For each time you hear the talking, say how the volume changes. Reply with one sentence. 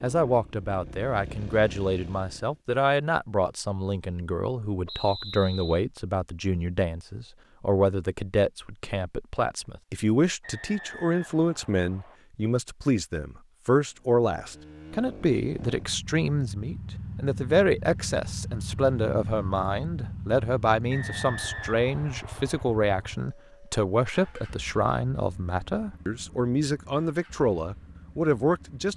You can hear the talking from 0.0 to 28.9 s, at a steady volume.